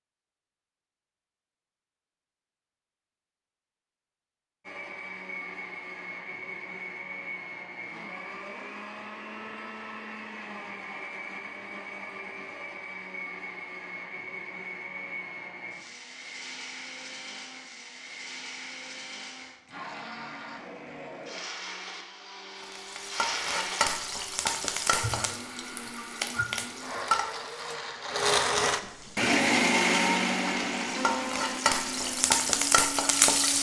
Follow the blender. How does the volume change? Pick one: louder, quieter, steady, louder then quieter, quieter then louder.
louder.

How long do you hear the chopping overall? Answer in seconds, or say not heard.
not heard.